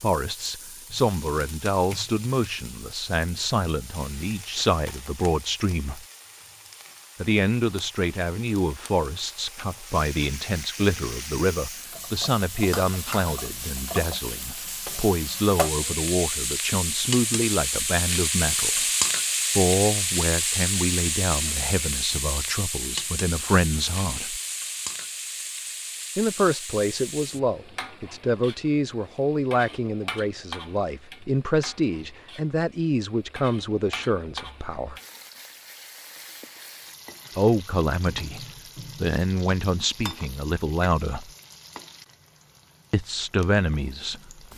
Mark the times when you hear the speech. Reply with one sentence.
The speech can be heard from 0.0 to 6.0 s, from 7.2 to 18.8 s, from 19.6 to 24.4 s, from 26.1 to 35.0 s, from 37.4 to 41.3 s and from 42.9 to 44.4 s.